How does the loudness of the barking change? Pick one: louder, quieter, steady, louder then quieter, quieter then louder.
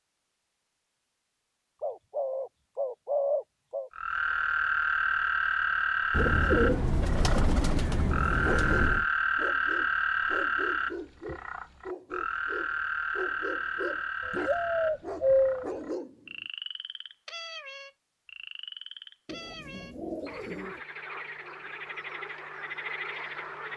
louder.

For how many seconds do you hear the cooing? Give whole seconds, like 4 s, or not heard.
8 s.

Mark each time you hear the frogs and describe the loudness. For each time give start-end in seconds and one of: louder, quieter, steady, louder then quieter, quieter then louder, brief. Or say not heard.
3.9-23.7 quieter.